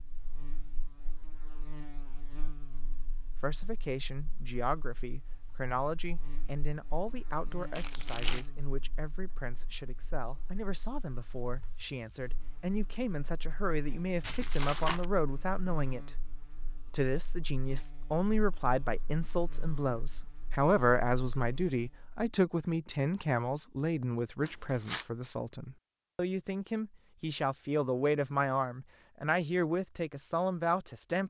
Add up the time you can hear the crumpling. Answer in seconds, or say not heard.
2 s.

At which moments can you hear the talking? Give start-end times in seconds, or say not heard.
3.3-31.2.